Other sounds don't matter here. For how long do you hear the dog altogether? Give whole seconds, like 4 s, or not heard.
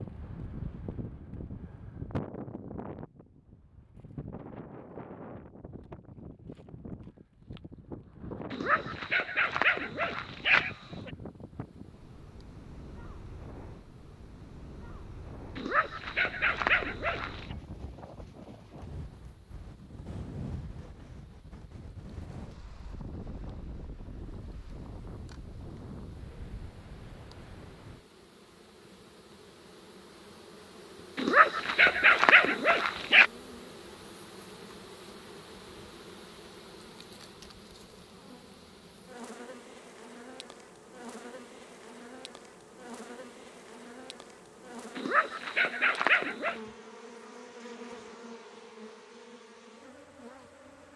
8 s.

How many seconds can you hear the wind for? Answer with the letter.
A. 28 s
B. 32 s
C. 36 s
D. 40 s
A.